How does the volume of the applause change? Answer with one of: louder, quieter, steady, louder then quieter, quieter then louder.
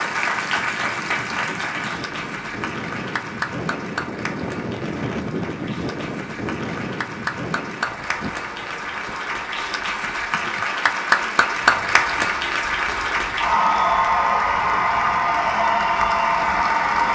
quieter then louder.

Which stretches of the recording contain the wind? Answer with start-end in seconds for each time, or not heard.
0.0-17.1.